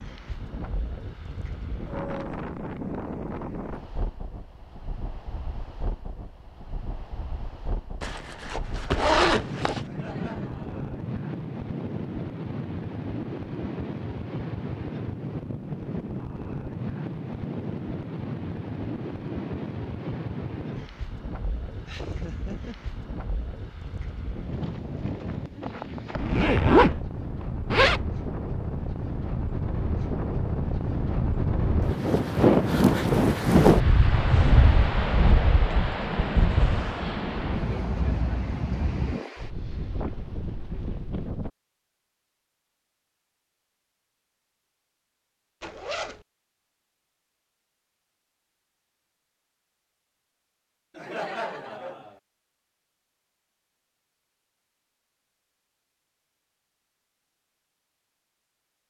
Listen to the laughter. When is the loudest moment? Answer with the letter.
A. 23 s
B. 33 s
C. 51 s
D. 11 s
C.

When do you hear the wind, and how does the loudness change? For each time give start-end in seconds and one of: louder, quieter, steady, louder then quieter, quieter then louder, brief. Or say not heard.
0.0-41.5 louder.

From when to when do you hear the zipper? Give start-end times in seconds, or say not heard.
8.0-9.8, 26.1-28.0, 45.6-46.2.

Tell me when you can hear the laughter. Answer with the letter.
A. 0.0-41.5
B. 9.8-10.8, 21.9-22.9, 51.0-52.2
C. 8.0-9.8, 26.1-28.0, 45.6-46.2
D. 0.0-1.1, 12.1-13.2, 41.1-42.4
B.